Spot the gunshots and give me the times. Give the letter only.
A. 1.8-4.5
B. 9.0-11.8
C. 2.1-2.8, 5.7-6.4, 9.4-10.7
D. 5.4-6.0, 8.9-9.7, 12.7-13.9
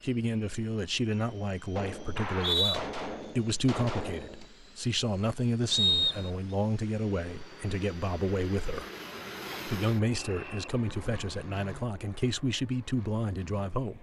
A.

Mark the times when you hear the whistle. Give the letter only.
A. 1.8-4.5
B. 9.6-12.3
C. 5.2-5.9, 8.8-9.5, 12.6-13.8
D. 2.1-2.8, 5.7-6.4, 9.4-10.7
D.